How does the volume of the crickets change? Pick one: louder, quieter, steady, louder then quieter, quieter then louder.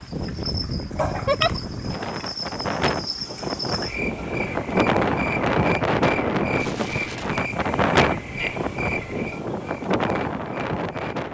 steady.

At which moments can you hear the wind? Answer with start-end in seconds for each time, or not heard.
0.0-11.3.